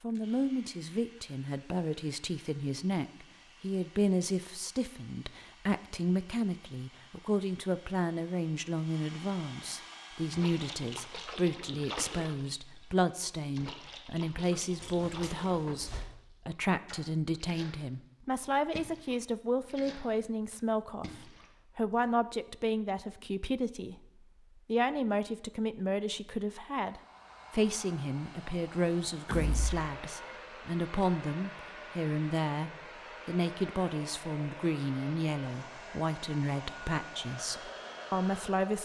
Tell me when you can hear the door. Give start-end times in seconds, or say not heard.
14.8-16.1, 29.2-29.9.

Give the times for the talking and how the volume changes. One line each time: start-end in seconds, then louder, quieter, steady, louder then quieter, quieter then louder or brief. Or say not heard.
0.0-38.7 steady.